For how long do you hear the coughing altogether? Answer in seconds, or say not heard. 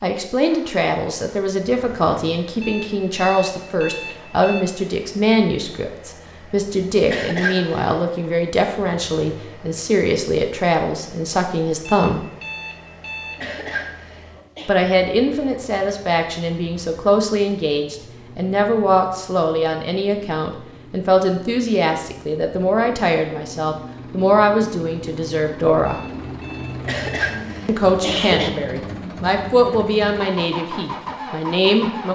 4 s.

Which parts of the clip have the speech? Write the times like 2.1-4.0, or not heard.
0.0-12.2, 14.7-26.0, 27.6-32.0.